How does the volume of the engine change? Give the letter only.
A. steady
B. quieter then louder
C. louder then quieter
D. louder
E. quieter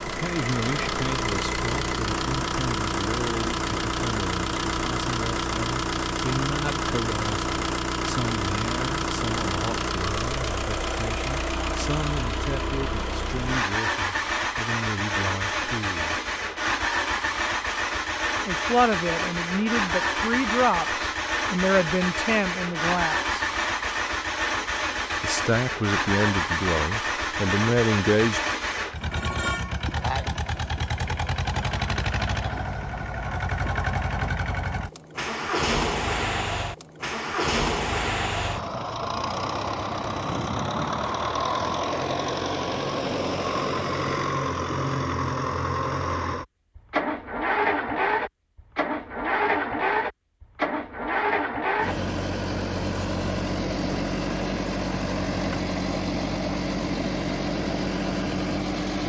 A.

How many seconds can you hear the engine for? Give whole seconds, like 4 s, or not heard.
59 s.